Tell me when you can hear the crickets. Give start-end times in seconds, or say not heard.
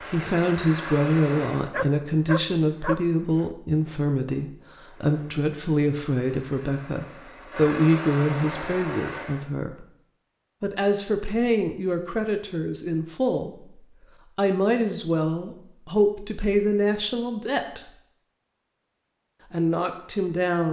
not heard.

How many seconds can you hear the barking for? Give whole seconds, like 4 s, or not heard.
2 s.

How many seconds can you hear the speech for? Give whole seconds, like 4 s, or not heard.
18 s.